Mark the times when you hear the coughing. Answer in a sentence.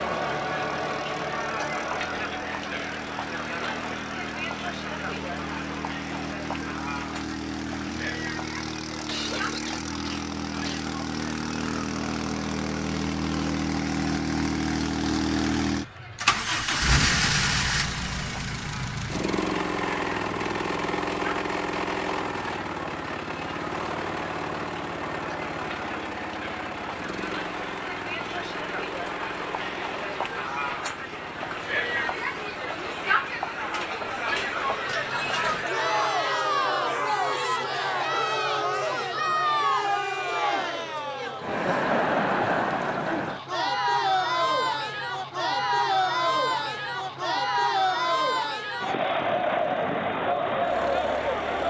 You can hear the coughing from 9.1 to 10.8 s.